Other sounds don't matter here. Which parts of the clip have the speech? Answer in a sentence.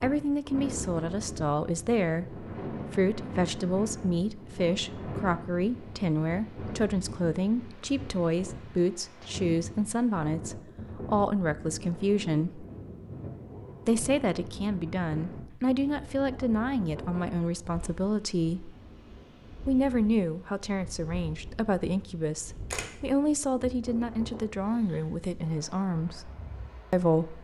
The speech can be heard from 0.0 to 12.7 s, from 13.8 to 18.7 s, from 19.6 to 26.3 s and from 26.9 to 27.3 s.